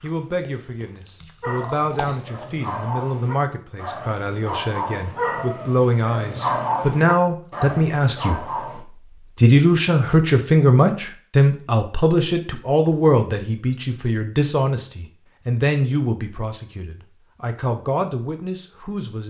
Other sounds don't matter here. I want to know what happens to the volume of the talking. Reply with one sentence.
The volume of the talking goes up, then down.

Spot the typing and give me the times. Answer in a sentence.
You can't hear the typing here.